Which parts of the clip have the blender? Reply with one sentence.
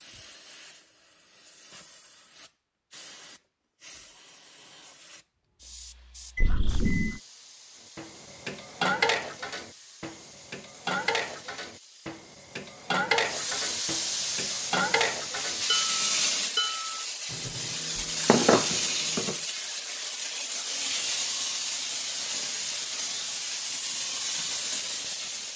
You can't hear the blender here.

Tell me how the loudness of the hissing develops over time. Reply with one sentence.
The volume of the hissing goes up.